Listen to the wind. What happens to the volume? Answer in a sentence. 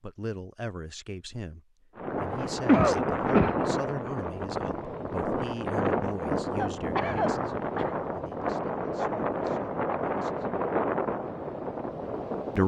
The volume of the wind stays about the same.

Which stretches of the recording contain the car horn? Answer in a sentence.
The car horn can't be heard in this clip.